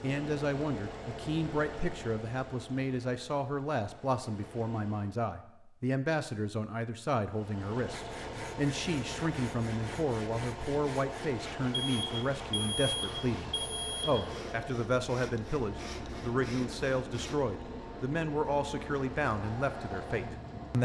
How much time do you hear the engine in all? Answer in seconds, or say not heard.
19 s.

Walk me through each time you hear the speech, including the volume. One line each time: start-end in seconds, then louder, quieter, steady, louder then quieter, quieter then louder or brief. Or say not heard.
0.0-20.8 steady.